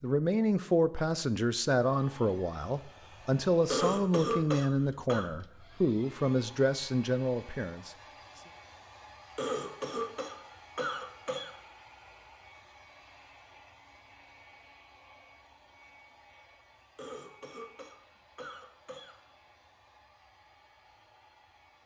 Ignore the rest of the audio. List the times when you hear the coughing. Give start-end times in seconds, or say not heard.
3.7-5.2, 9.3-11.6, 16.9-19.2.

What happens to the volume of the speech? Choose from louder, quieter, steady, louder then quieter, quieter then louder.
steady.